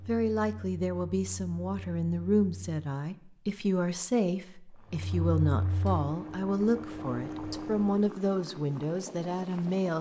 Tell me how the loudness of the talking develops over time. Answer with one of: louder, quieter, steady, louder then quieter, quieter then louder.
steady.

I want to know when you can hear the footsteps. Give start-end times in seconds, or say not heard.
not heard.